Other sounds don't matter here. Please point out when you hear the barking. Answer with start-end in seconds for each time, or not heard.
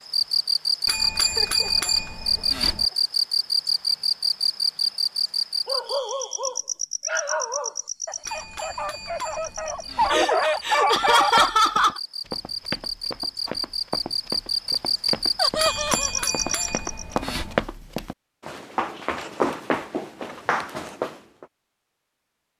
5.7-11.5.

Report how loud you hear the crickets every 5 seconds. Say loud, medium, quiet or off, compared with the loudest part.
loud, medium, medium, loud, off.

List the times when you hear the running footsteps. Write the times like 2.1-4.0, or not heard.
10.7-21.4.